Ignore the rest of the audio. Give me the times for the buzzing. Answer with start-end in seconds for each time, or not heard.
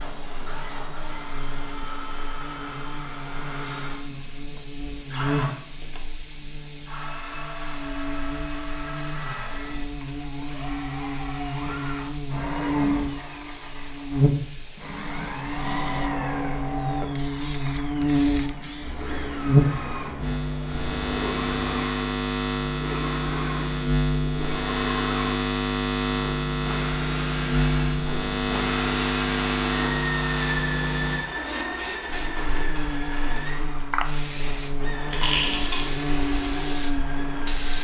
0.0-37.7.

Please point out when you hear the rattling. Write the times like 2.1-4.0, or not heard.
35.1-35.9.